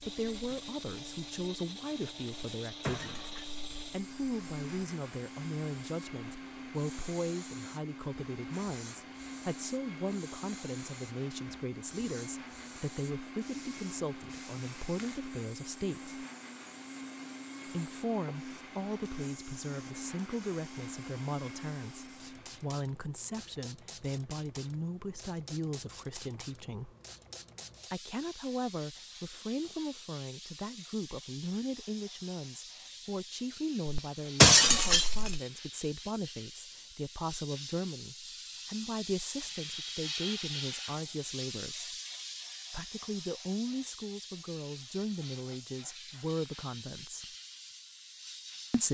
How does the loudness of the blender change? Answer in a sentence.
The loudness of the blender stays about the same.